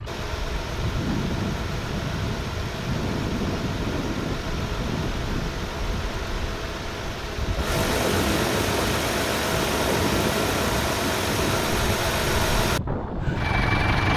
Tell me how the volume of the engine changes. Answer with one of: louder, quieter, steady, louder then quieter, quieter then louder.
louder.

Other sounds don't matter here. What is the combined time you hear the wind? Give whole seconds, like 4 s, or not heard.
14 s.